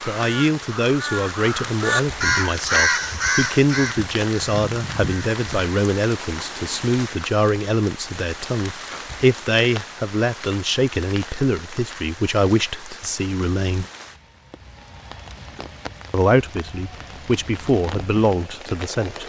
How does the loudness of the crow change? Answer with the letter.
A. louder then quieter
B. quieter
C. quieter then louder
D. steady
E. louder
A.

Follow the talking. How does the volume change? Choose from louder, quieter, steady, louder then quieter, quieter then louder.
steady.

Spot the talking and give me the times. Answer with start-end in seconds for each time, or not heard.
0.0-13.8, 16.1-19.2.